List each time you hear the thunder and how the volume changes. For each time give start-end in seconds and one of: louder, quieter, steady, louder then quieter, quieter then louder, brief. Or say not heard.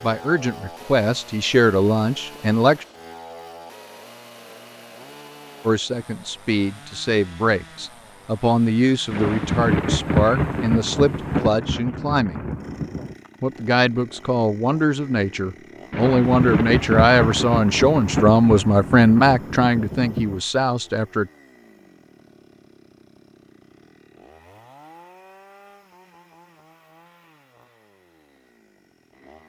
9.1-13.2 quieter
15.9-20.4 quieter.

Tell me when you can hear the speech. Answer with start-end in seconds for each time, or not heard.
0.0-2.9, 5.7-12.4, 13.4-21.3.